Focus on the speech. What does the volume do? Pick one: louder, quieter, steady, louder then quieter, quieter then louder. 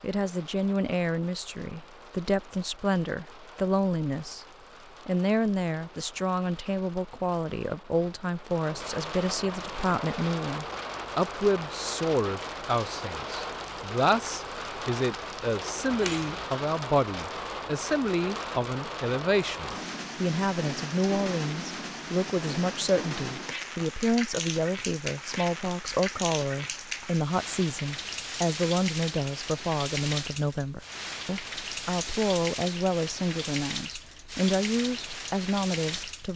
steady.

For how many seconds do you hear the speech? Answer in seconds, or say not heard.
36 s.